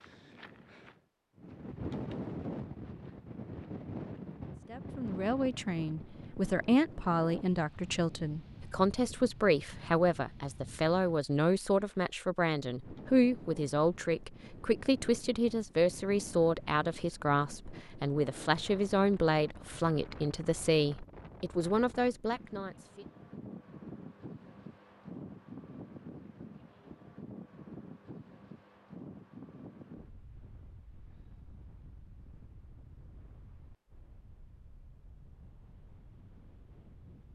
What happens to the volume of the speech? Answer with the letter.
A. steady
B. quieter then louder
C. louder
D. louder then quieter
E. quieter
A.